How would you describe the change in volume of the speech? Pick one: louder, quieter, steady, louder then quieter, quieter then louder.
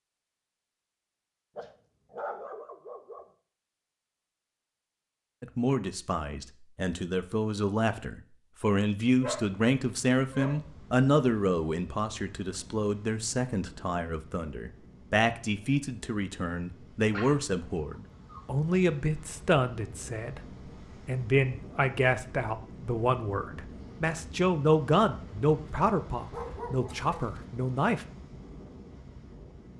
steady.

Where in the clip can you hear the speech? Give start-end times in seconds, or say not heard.
5.4-20.4, 21.1-28.1.